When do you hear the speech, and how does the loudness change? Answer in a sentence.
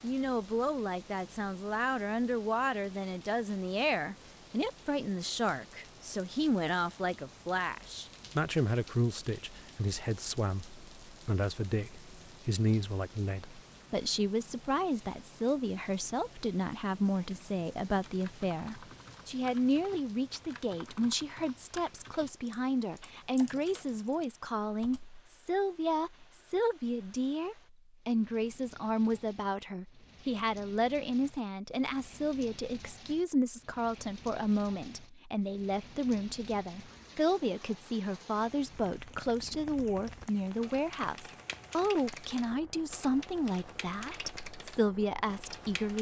The speech can be heard from 0.0 to 45.9 s, at a steady volume.